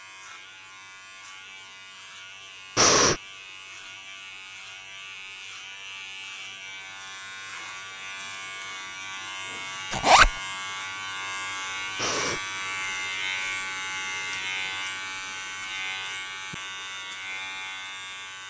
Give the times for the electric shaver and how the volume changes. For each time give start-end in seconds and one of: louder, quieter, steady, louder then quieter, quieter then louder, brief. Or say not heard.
0.0-18.4 louder.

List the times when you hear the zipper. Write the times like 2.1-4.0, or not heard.
9.9-10.3.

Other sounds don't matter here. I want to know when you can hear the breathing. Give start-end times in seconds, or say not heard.
2.8-3.2, 11.9-12.4.